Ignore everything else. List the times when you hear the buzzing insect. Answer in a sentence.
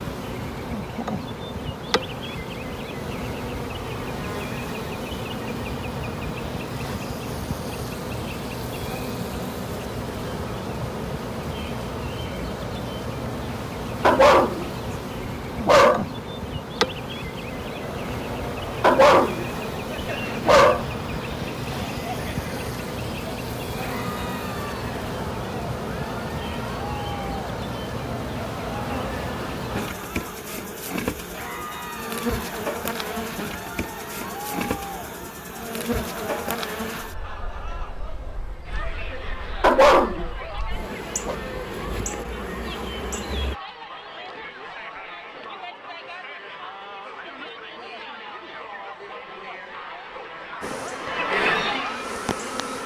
The buzzing insect can be heard from 0.0 to 43.5 s and from 50.6 to 52.8 s.